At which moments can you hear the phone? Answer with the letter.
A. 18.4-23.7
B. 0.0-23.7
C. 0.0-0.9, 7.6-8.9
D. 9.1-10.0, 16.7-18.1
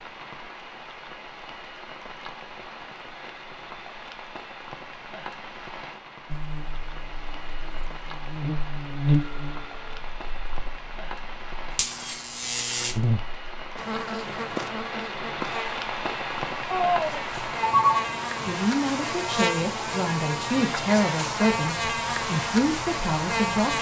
D.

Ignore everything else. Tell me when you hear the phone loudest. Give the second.
18 s.